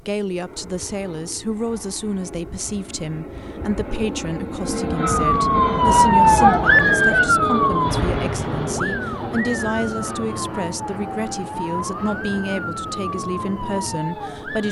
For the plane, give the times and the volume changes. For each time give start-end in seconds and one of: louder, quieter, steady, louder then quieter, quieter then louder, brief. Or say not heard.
0.0-14.6 louder then quieter.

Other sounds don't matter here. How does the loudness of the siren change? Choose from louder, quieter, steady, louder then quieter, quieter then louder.
quieter.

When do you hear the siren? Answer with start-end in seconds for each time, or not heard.
5.1-14.6.